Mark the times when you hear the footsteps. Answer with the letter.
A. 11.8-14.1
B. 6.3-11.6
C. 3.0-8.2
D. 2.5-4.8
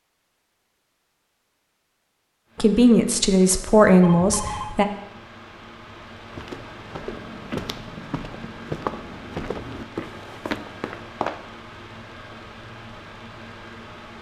B.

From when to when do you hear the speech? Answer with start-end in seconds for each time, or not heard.
2.5-4.8.